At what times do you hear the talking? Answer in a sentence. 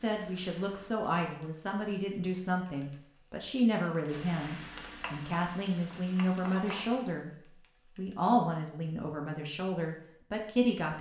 The talking can be heard from 0.0 to 7.3 s and from 8.0 to 10.9 s.